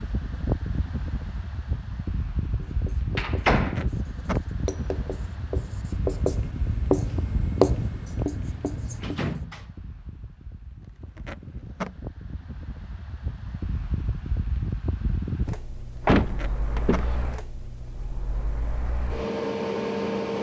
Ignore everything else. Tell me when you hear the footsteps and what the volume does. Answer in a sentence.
The footsteps can't be heard in this clip.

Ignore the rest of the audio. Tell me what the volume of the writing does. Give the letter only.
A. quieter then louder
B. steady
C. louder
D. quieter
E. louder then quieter
E.